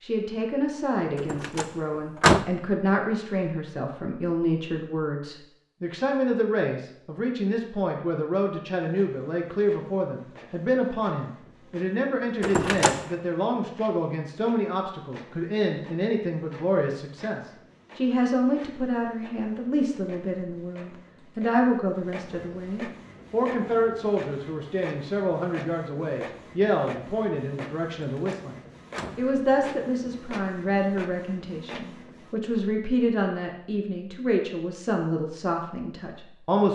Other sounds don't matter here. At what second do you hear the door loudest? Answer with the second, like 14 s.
2 s.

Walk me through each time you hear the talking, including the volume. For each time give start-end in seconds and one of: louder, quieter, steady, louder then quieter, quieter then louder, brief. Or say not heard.
0.0-36.7 steady.